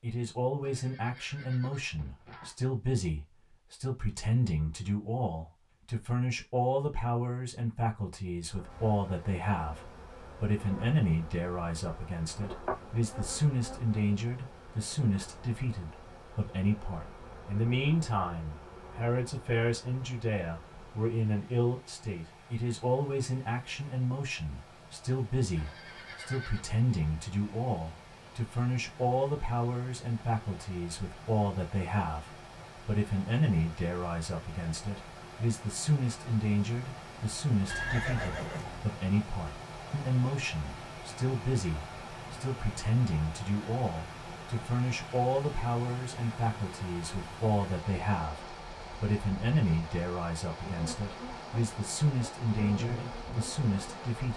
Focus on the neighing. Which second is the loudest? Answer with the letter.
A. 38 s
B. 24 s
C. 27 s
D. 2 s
A.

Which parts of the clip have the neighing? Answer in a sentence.
The neighing can be heard from 0.6 to 2.5 s, from 25.6 to 26.8 s and from 37.6 to 38.9 s.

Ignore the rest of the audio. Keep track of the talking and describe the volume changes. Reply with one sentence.
The loudness of the talking stays about the same.